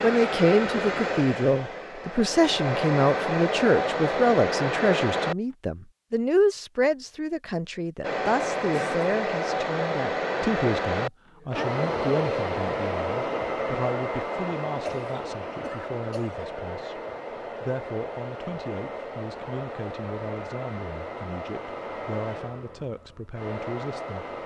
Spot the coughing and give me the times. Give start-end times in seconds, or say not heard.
8.7-9.1, 14.7-16.4.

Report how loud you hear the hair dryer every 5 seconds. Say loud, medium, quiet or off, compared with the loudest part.
loud, loud, loud, medium, medium.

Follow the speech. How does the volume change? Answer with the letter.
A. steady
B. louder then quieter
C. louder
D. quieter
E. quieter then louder
D.